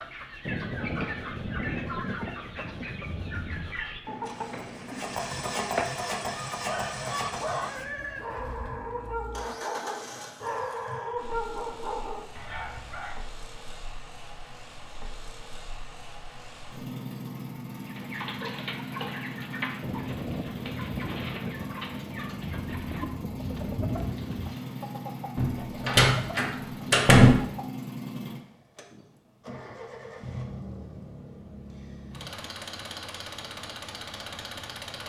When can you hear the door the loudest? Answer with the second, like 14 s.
27 s.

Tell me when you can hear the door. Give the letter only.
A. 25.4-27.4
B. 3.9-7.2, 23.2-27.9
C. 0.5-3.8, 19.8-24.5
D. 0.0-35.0
A.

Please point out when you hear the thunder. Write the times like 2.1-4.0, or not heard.
0.5-3.8, 19.8-24.5.